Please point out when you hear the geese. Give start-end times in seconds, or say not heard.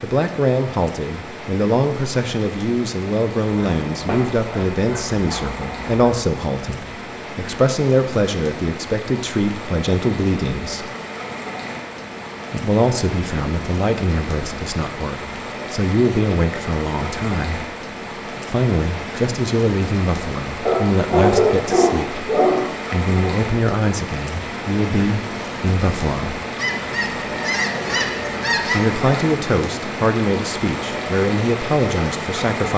26.6-29.2.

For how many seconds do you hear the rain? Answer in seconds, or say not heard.
33 s.